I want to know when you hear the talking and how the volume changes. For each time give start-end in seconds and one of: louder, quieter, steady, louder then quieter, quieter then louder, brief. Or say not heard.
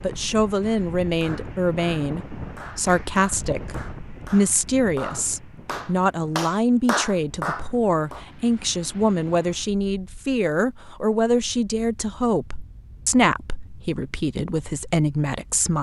0.0-15.7 steady.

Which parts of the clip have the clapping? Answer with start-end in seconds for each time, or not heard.
0.6-8.2.